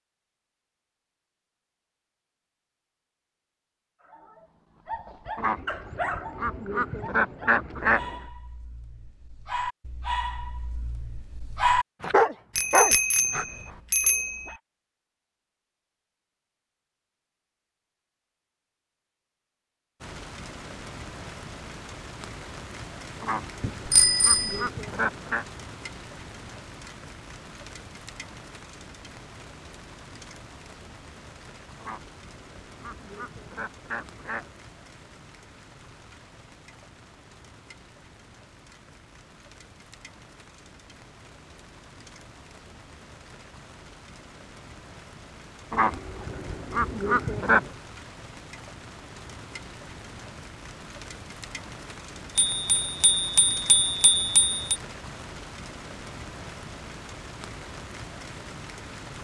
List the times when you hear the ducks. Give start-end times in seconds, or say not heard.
5.3-8.2, 23.2-25.4, 31.8-34.5, 45.7-47.7.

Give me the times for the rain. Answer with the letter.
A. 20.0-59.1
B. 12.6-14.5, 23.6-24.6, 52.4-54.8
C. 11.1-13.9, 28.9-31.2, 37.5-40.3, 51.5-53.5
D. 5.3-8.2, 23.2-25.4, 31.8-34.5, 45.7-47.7
A.